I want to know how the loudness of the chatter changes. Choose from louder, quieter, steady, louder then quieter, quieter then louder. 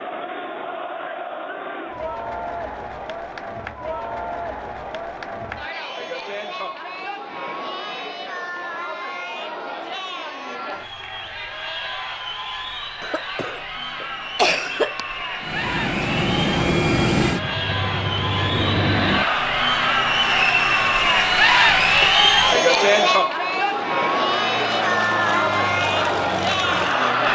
louder.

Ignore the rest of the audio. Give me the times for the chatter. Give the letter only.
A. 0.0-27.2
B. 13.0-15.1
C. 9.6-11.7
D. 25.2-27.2
A.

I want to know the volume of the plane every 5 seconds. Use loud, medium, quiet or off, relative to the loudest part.
off, off, off, loud, medium, loud.